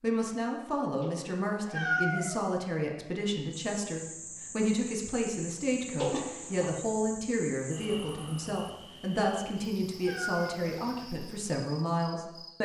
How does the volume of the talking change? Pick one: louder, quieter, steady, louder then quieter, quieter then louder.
steady.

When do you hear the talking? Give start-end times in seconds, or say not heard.
0.0-12.6.